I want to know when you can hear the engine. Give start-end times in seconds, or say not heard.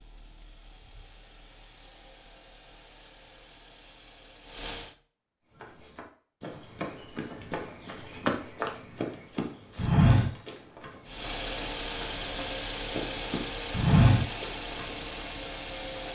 0.0-5.0, 11.1-16.1.